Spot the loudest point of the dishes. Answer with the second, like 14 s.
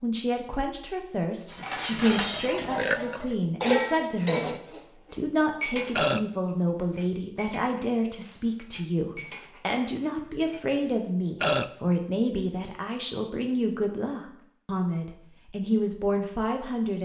4 s.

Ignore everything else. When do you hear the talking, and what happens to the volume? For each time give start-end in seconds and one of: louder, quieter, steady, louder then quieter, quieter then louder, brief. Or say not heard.
0.0-16.9 steady.